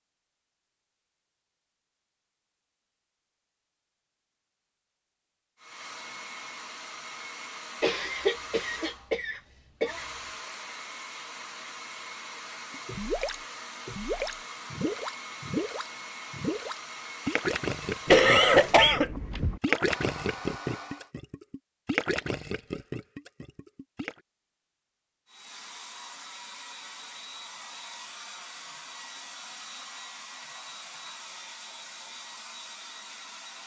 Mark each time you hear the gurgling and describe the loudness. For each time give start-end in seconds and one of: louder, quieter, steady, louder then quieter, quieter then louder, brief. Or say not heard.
12.7-24.2 steady.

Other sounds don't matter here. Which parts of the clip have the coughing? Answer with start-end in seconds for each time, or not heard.
7.8-10.1, 18.1-19.6.